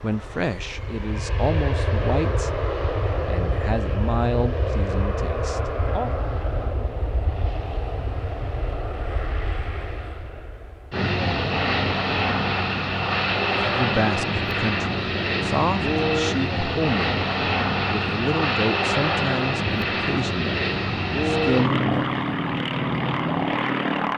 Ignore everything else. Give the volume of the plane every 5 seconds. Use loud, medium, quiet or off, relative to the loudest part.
medium, medium, loud, loud, loud.